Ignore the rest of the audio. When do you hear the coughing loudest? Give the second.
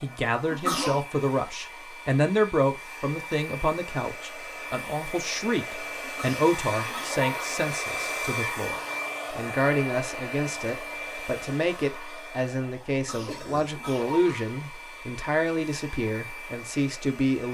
1 s.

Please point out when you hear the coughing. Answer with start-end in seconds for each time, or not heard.
0.5-1.1, 6.0-7.7, 12.9-14.6.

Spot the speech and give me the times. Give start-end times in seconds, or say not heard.
0.0-17.5.